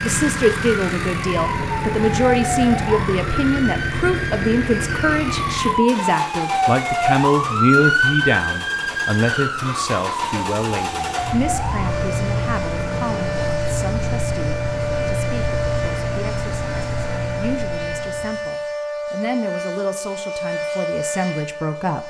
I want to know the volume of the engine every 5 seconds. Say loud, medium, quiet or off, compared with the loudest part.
loud, medium, loud, loud, off.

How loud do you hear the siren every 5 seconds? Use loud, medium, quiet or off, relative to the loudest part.
medium, loud, medium, medium, medium.